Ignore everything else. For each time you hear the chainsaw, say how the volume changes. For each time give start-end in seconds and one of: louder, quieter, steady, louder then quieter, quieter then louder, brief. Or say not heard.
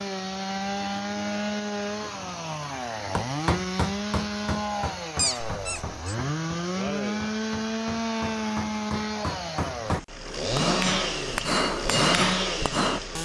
0.0-13.2 steady.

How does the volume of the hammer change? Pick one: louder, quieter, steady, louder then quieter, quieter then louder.
quieter then louder.